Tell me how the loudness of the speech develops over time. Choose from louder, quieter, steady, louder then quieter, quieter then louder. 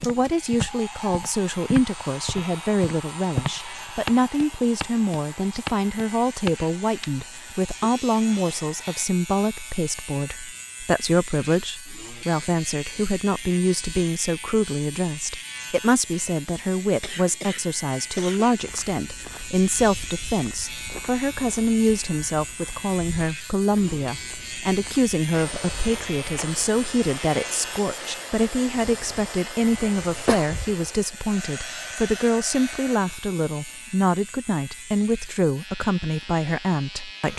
steady.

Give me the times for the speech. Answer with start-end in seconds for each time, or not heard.
0.0-37.3.